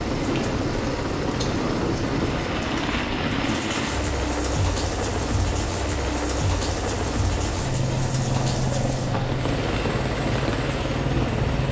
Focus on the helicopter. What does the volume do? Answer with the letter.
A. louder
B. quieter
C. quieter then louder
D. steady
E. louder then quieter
D.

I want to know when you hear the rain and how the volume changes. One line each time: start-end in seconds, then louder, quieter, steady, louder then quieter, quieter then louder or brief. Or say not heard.
0.0-11.6 steady.